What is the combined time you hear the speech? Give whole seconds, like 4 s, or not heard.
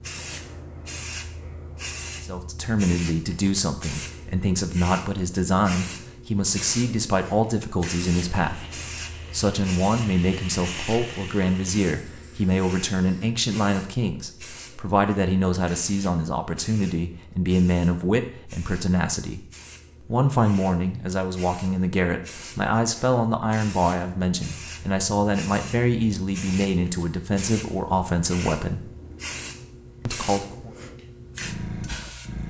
27 s.